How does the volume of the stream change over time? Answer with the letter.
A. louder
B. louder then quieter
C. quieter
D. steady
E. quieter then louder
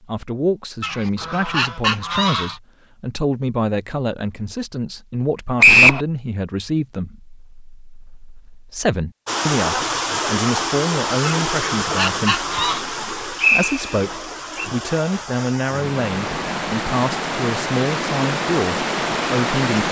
E.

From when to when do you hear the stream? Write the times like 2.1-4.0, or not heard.
9.2-19.8.